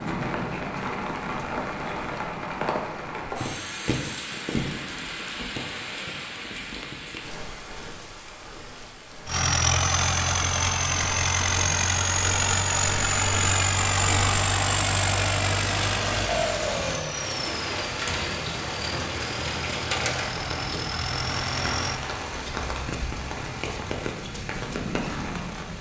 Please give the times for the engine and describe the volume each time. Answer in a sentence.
The engine can be heard from 9.2 to 22.0 s, getting quieter.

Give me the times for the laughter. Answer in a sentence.
You can't hear the laughter here.